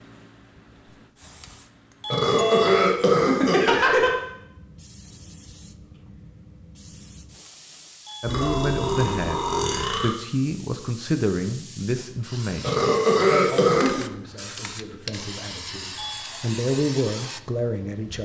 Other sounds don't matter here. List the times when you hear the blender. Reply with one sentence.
The blender can't be heard in this clip.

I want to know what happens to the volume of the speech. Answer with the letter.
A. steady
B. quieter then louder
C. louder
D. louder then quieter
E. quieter
B.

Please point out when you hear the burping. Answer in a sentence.
The burping can be heard from 2.1 to 4.1 s, from 8.2 to 10.2 s and from 12.6 to 14.0 s.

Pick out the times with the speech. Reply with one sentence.
You can hear the speech from 8.2 to 18.2 s.